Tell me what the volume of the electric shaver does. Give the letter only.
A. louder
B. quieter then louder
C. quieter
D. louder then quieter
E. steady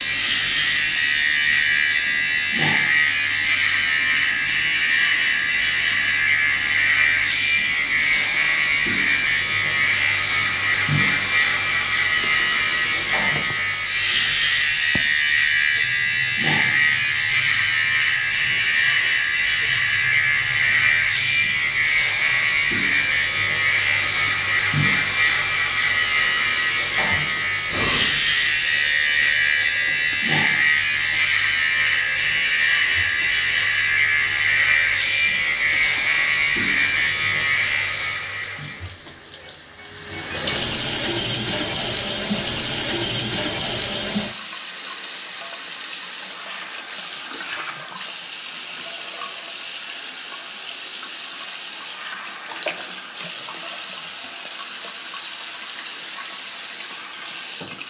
E.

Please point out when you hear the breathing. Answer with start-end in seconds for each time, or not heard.
27.6-28.1.